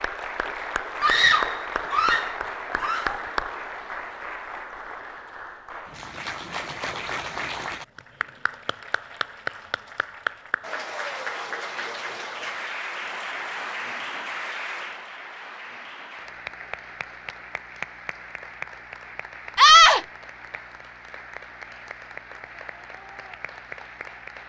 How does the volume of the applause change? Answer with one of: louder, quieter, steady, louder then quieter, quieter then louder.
quieter.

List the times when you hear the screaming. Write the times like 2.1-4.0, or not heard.
1.0-3.2, 19.6-20.0.